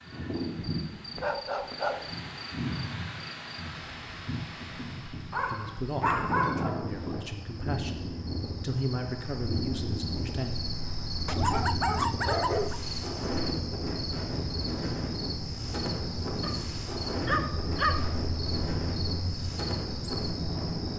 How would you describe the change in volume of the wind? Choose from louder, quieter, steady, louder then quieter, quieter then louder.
steady.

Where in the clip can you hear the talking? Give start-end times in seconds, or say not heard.
5.5-10.8.